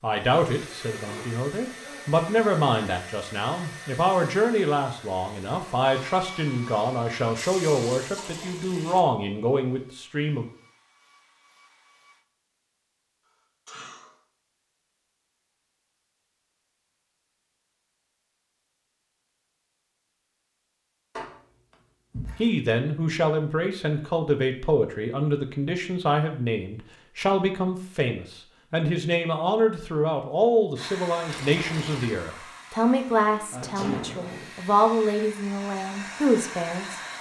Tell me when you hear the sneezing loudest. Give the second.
34 s.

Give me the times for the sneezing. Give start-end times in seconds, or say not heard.
0.8-2.2, 13.7-14.2, 33.5-34.5.